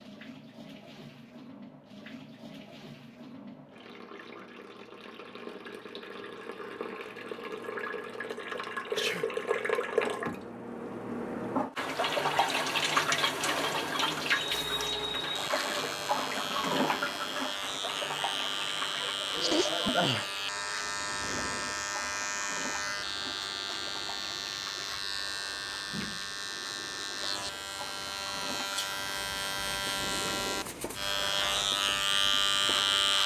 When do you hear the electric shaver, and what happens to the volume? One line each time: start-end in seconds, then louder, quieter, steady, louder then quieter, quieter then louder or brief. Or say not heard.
14.5-33.2 louder.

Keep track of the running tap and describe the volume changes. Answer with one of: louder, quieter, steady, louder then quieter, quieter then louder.
louder then quieter.